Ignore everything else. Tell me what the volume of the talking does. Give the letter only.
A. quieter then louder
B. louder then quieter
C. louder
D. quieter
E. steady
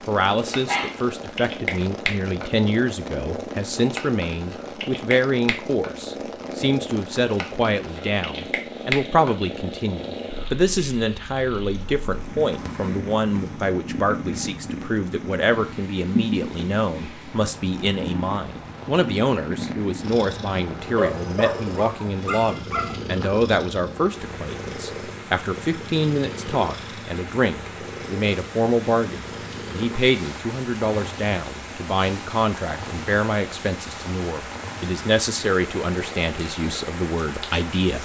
E.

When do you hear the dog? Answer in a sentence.
The dog can be heard from 0.5 to 1.0 s and from 20.9 to 23.0 s.